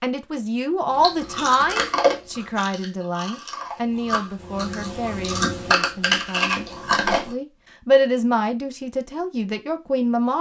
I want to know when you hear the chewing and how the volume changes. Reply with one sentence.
You can hear the chewing from 1.0 to 7.3 s, getting quieter then louder.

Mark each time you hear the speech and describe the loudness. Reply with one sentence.
You can hear the speech from 0.0 to 10.3 s, getting quieter then louder.